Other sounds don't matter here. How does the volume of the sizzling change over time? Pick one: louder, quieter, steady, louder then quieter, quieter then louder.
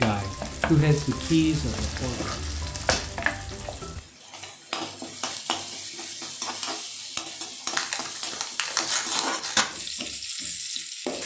steady.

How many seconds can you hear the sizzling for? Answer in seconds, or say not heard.
11 s.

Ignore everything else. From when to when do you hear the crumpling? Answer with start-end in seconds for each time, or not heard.
0.9-3.1, 7.8-9.7.